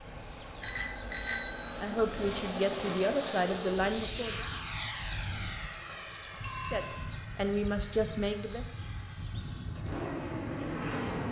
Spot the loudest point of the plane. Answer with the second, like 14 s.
4 s.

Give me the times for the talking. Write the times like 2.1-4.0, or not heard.
1.8-4.5, 6.7-8.7.